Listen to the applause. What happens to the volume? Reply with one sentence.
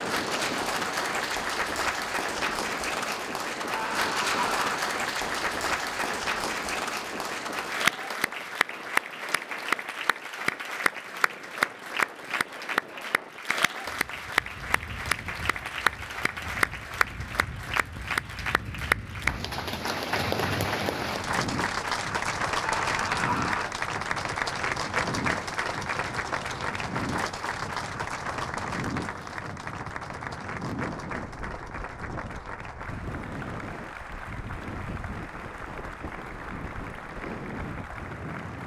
The loudness of the applause goes down.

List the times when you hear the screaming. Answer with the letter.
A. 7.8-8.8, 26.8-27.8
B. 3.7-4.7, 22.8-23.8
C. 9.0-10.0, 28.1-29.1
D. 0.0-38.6
B.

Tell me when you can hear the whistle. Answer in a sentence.
You can't hear the whistle here.